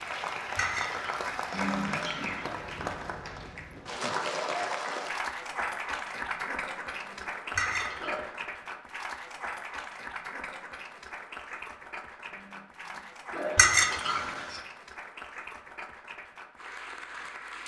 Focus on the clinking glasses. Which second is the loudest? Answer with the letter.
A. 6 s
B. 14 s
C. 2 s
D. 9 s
B.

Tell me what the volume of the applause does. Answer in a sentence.
The loudness of the applause goes down.